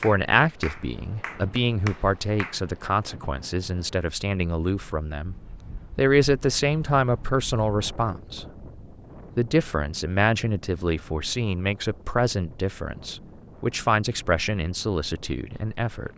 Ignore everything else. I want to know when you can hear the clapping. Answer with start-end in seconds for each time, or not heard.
0.0-2.6.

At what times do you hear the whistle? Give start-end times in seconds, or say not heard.
not heard.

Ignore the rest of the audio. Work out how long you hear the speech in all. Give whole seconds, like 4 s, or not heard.
15 s.